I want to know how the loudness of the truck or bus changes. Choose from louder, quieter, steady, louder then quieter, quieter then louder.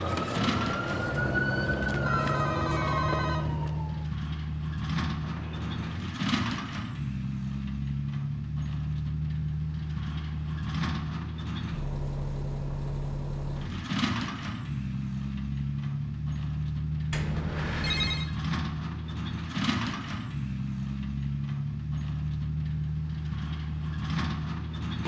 steady.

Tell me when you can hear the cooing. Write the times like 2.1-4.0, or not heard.
not heard.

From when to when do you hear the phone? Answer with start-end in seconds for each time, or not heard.
2.0-3.5, 17.1-18.3.